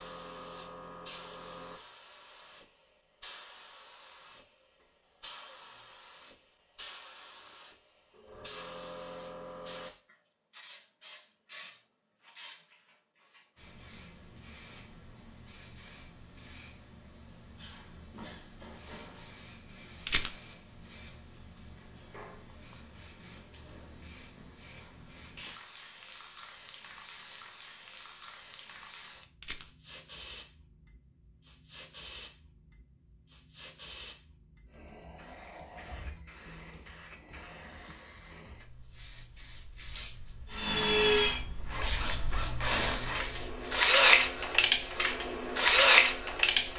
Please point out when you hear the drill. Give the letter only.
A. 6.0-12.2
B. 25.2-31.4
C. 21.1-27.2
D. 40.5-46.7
D.